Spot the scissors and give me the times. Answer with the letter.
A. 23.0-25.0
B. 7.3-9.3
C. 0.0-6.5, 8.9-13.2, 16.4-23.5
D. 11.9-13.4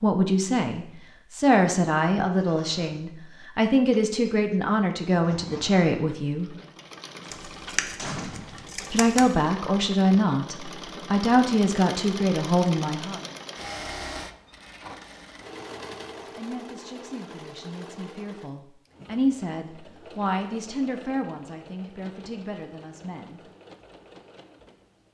B.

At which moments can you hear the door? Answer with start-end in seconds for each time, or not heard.
7.2-8.7.